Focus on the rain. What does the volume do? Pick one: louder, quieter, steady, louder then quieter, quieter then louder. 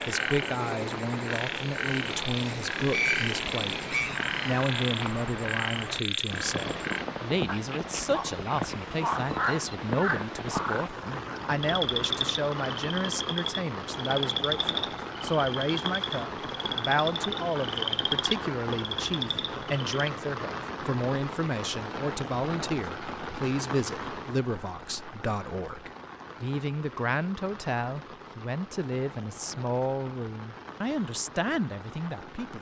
quieter.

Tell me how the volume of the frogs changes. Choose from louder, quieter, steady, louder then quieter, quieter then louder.
steady.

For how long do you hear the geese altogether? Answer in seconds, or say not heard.
2 s.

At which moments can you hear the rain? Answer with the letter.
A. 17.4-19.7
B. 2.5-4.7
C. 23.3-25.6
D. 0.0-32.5
D.